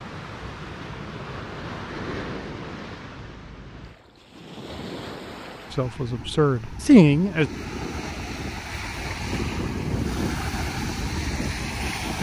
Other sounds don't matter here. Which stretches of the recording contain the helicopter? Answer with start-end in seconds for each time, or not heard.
not heard.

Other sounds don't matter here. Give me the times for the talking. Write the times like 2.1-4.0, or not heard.
5.7-7.5.